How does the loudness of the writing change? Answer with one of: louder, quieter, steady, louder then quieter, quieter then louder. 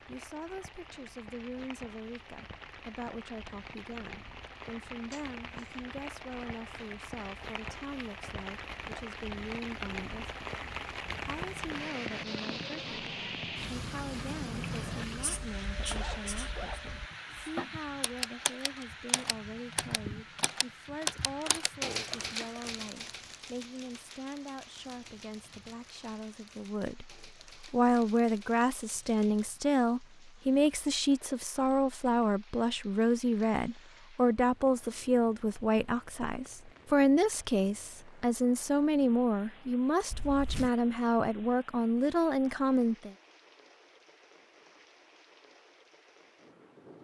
louder then quieter.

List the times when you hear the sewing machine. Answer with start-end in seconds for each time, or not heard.
not heard.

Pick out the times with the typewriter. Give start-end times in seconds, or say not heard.
17.8-29.5.